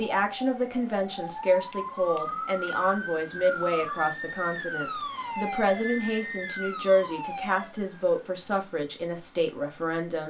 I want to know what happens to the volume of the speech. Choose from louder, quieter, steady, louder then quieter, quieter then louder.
steady.